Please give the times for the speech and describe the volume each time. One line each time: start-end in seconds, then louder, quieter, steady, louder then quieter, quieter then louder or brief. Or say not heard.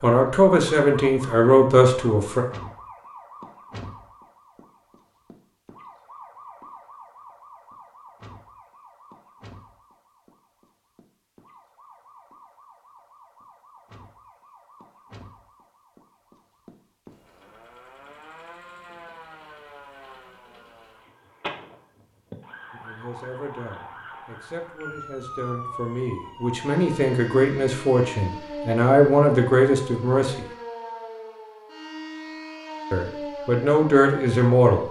0.0-2.5 brief
22.7-30.4 louder
32.9-34.8 brief.